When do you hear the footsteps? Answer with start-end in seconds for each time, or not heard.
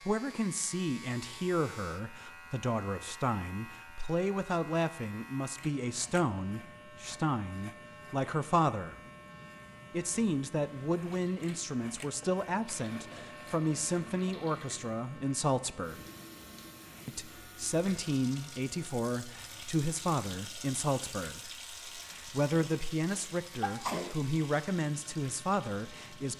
not heard.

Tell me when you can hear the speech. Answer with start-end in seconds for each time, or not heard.
0.1-9.0, 9.9-16.1, 17.1-26.3.